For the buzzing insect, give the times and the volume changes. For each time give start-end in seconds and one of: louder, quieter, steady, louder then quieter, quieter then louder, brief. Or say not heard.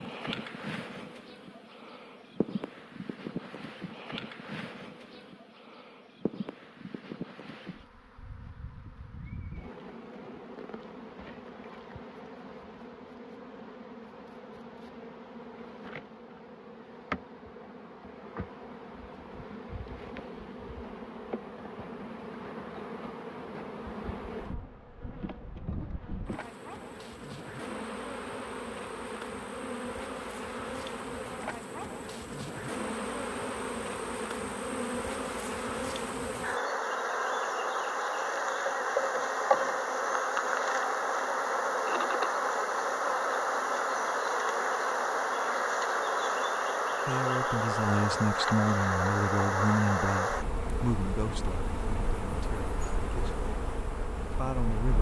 0.0-54.9 louder.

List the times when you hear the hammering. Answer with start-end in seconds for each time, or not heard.
not heard.